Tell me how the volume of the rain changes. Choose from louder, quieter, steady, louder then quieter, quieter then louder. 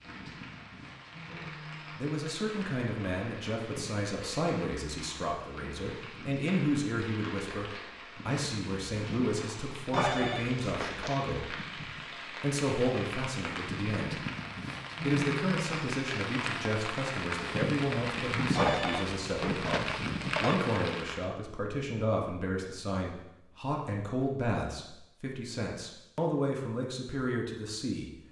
louder.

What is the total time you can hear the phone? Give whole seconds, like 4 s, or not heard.
3 s.